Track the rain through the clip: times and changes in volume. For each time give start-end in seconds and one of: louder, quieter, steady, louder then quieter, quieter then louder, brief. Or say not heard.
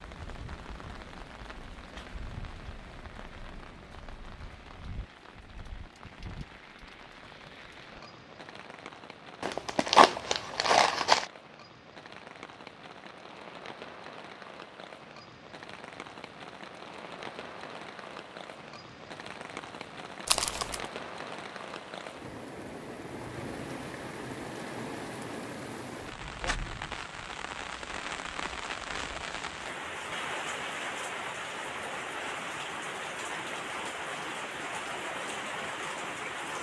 0.0-36.5 louder.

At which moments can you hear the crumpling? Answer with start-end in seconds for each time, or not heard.
9.4-11.2, 20.2-20.8.